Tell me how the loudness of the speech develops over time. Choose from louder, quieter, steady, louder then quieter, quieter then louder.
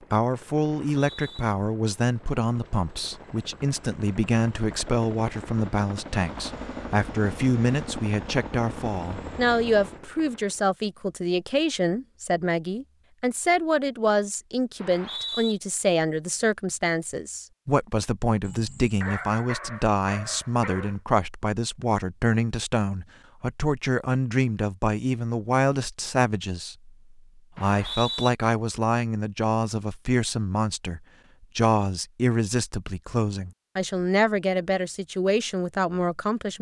steady.